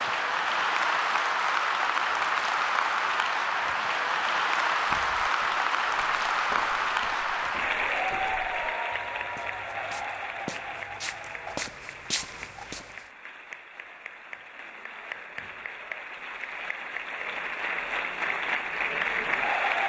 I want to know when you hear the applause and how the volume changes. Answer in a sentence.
You can hear the applause from 0.0 to 19.8 s, getting quieter then louder.